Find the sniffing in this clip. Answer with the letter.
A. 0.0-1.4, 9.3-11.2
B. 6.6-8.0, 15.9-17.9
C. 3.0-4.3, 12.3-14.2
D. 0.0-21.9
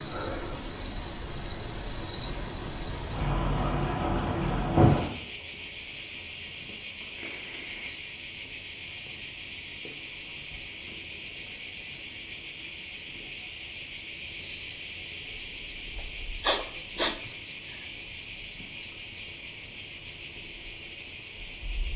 B.